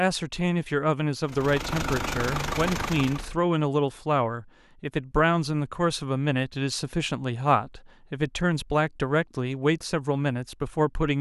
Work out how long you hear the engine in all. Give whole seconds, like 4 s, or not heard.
2 s.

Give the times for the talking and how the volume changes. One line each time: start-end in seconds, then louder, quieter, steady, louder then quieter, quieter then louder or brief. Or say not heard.
0.0-11.1 steady.